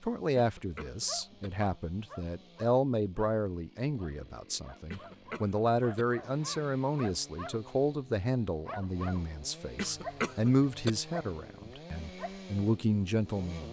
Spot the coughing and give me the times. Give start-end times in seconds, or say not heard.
0.3-1.5, 4.9-6.0, 9.8-10.9.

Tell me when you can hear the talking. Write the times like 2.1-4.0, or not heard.
0.0-13.6.